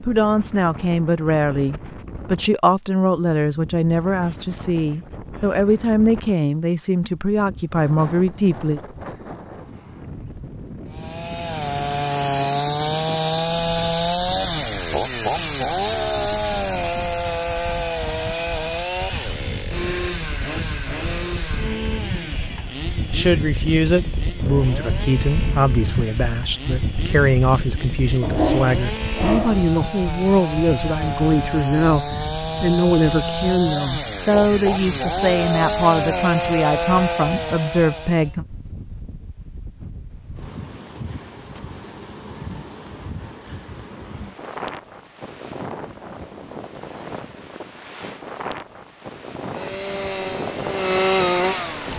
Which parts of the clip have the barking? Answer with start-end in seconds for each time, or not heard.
28.2-29.6.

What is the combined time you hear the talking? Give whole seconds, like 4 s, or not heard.
24 s.